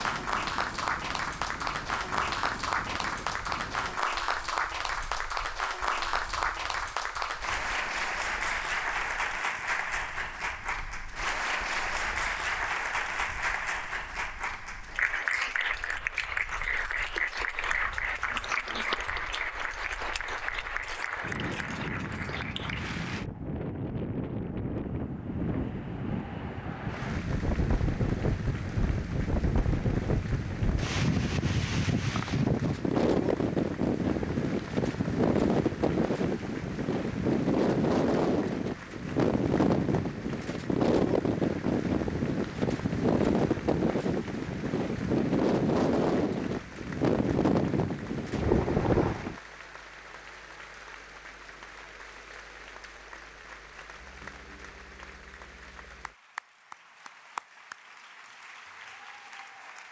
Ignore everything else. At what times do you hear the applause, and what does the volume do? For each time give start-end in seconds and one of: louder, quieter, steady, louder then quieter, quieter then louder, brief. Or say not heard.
0.0-23.2 steady
26.9-59.8 steady.